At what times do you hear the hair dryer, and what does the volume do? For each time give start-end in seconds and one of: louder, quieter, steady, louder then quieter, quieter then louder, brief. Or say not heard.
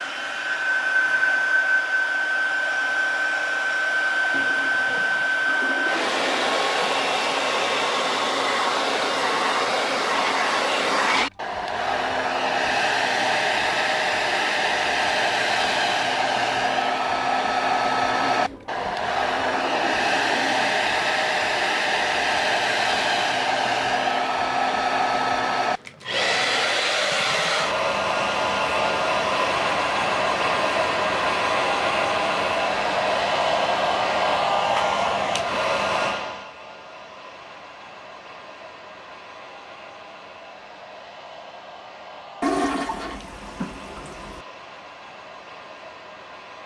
0.0-46.6 quieter.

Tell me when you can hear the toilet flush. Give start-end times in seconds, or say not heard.
4.3-6.5, 18.2-20.6, 42.4-44.4.